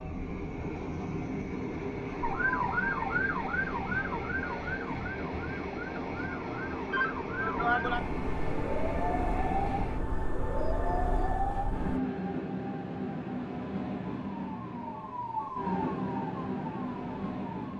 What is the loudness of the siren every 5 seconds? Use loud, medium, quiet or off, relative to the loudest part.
loud, loud, loud, medium.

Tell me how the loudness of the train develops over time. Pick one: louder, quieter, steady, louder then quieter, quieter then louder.
steady.